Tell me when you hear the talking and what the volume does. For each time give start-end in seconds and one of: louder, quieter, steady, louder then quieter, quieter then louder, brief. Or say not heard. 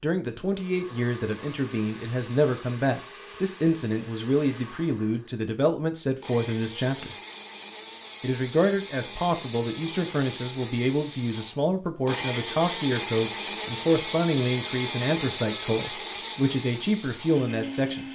0.0-7.2 steady
8.2-18.1 steady.